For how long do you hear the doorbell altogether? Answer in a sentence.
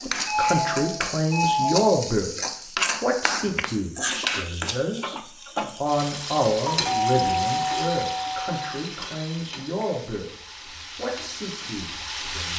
The doorbell can be heard for 4 seconds in total.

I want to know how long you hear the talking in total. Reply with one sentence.
The talking can be heard for 11 seconds in total.